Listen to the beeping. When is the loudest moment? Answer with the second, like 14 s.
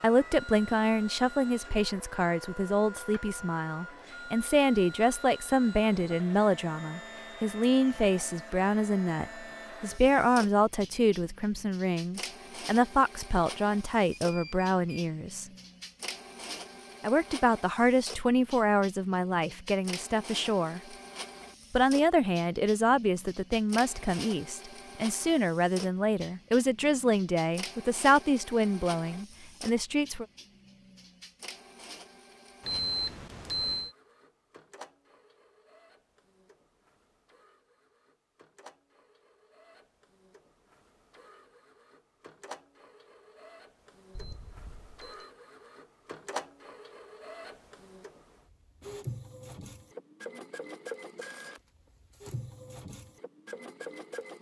33 s.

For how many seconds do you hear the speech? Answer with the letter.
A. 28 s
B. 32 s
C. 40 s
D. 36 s
A.